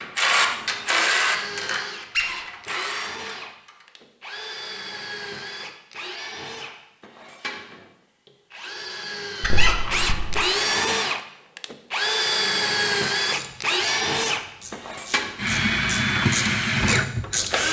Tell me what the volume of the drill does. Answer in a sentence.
The loudness of the drill goes up.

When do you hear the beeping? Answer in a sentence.
The beeping can't be heard in this clip.